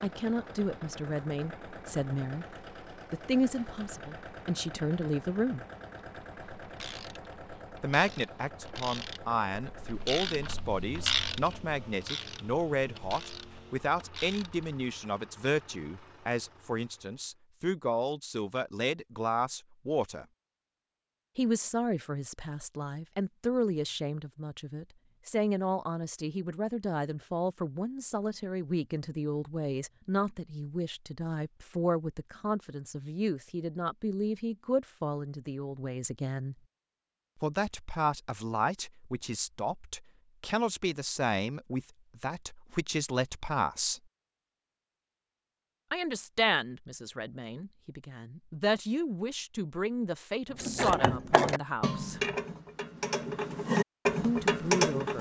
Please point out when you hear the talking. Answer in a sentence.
You can hear the talking from 0.0 to 5.7 s, from 7.8 to 20.2 s, from 21.4 to 36.5 s, from 37.4 to 44.0 s, from 45.9 to 52.2 s and from 54.2 to 55.1 s.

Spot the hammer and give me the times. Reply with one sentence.
The hammer can't be heard in this clip.